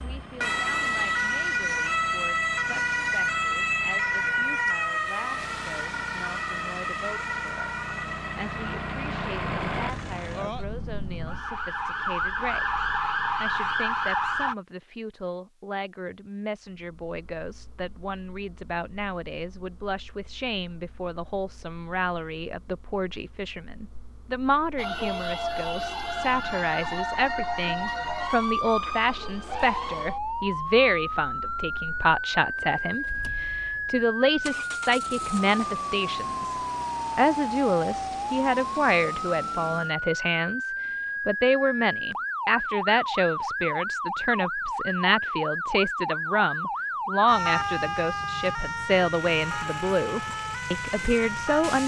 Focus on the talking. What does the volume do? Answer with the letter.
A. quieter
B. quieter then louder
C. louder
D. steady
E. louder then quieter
C.